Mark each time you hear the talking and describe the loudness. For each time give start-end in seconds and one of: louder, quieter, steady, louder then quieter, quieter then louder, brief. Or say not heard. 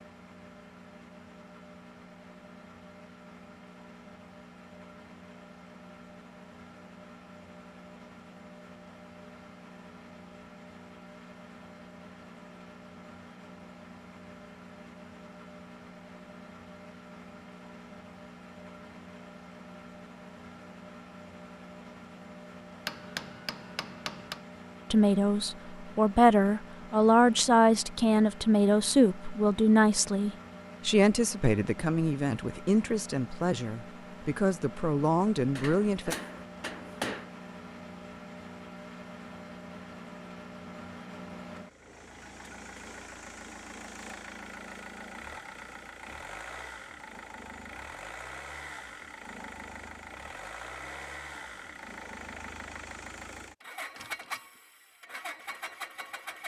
24.9-36.1 quieter.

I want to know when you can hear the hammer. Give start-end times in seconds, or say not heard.
22.9-24.4, 35.5-37.3.